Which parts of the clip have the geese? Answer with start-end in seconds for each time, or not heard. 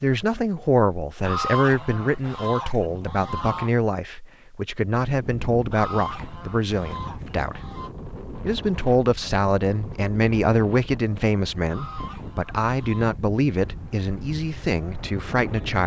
1.2-3.7, 5.7-7.9, 11.7-13.2.